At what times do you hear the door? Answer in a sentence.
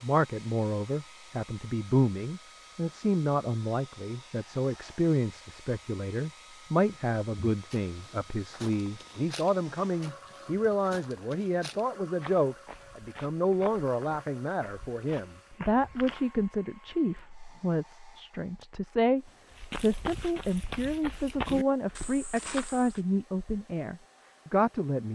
The door can't be heard in this clip.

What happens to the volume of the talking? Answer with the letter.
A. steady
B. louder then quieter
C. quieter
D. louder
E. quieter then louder
A.